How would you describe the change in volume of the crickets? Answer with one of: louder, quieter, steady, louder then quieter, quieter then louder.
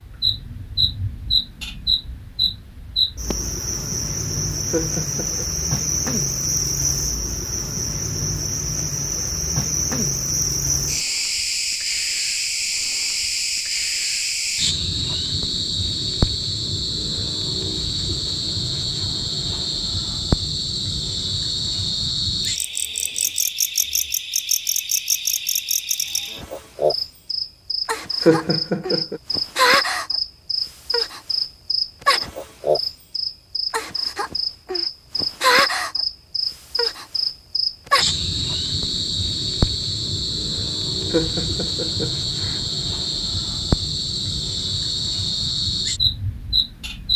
steady.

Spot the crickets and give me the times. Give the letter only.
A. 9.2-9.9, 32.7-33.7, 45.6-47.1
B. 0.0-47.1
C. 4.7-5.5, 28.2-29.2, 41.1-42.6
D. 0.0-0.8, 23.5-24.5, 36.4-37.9
B.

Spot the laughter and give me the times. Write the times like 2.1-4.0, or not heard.
4.7-5.5, 28.2-29.2, 41.1-42.6.